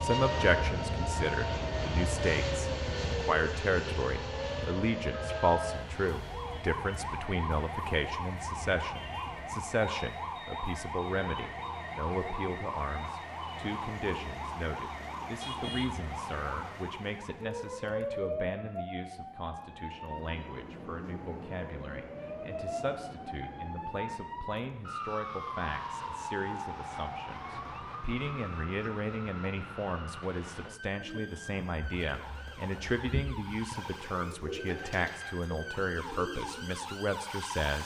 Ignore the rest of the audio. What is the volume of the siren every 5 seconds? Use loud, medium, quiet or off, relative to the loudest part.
loud, loud, loud, loud, loud, loud, medium, loud.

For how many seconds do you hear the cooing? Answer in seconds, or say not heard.
6 s.